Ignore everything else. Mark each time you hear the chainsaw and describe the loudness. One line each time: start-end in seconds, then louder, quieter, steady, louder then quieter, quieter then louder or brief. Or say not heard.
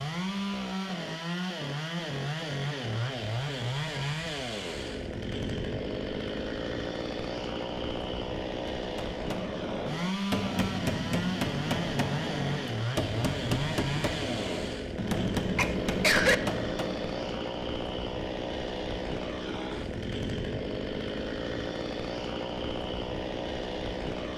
0.0-24.3 steady.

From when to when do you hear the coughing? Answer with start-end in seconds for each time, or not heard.
15.6-16.4.